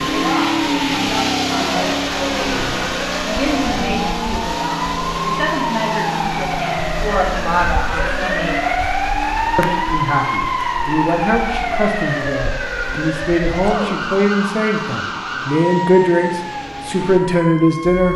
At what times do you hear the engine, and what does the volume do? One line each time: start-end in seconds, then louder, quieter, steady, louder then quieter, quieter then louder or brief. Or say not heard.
0.0-18.1 quieter.